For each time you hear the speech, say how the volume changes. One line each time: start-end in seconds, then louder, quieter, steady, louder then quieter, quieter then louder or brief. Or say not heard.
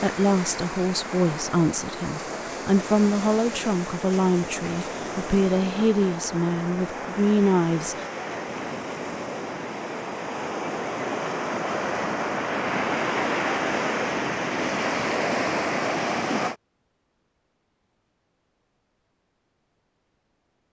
0.0-8.0 steady.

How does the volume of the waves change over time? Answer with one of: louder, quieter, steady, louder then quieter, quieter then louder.
louder.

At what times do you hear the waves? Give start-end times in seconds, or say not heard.
0.0-16.6.